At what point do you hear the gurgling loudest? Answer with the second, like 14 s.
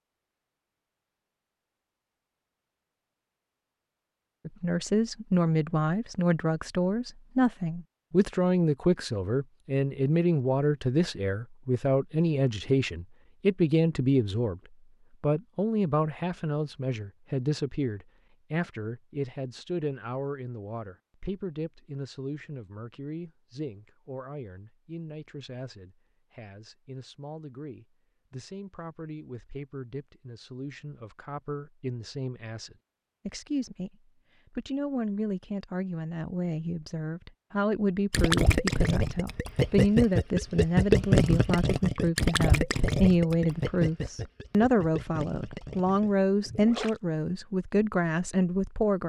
41 s.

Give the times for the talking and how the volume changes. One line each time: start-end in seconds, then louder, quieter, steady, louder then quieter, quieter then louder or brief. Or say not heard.
4.5-14.6 steady
15.2-49.0 quieter then louder.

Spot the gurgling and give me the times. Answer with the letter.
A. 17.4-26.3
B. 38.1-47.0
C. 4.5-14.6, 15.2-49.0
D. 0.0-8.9
B.